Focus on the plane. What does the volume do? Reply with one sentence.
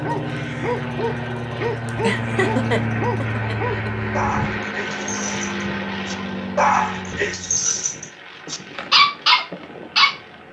The loudness of the plane goes down.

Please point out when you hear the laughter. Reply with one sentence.
The laughter can be heard from 1.9 to 3.9 s.